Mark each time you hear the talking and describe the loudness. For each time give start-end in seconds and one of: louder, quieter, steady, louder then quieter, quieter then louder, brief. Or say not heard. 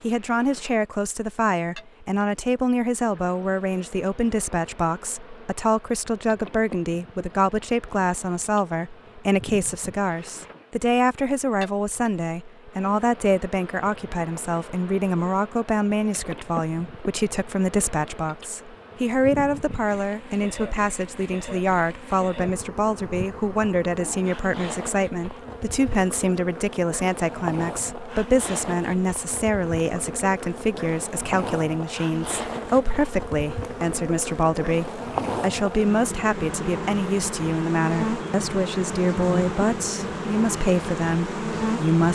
0.0-42.1 steady.